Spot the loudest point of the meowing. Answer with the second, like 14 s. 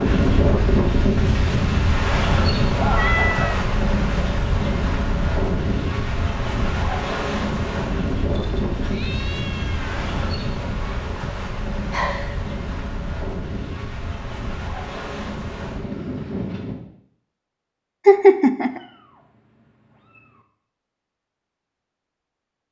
3 s.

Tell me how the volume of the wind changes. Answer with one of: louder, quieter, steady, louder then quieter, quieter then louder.
quieter.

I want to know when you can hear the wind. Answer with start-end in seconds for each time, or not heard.
0.0-16.8.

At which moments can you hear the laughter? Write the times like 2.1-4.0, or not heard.
2.8-3.5, 11.9-12.3, 18.1-18.8.